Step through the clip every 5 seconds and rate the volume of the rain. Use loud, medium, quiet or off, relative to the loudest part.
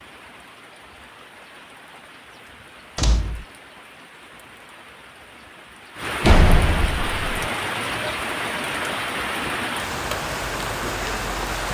quiet, loud, loud.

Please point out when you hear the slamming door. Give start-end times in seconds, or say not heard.
3.0-3.5, 6.2-7.2.